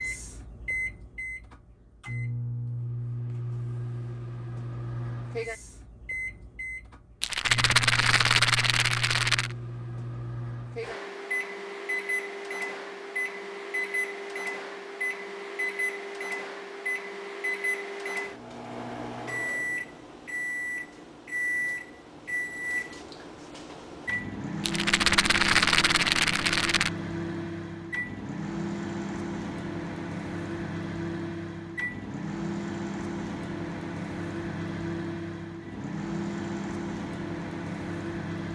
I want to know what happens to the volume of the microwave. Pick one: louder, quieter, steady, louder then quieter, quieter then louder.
steady.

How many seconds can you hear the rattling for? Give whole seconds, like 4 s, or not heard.
5 s.